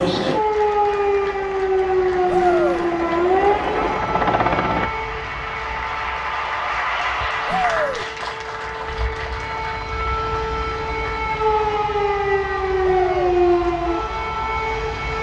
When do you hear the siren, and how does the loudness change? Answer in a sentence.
You can hear the siren from 0.0 to 15.1 s, getting quieter then louder.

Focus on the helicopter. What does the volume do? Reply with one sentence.
The volume of the helicopter goes up.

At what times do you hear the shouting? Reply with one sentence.
The shouting can be heard from 2.2 to 2.9 s, from 7.5 to 8.1 s and from 12.8 to 13.4 s.